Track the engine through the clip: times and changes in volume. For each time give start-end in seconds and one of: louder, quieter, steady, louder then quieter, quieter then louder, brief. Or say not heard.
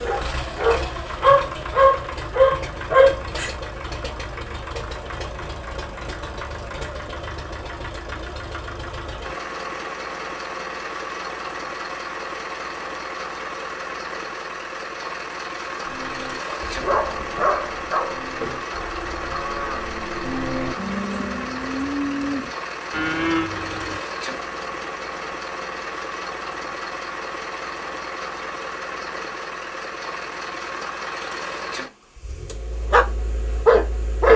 0.0-34.3 steady.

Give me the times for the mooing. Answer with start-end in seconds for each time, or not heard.
15.8-24.0.